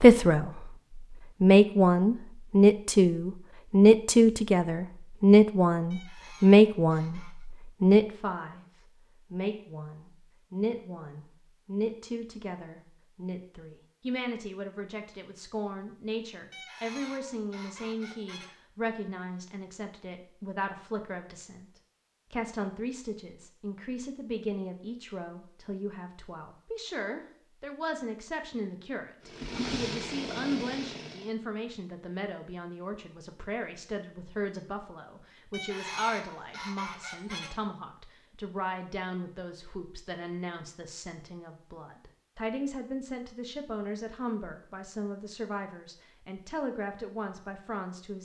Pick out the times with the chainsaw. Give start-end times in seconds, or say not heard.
29.2-31.4.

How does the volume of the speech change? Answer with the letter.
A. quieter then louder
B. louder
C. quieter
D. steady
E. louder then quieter
C.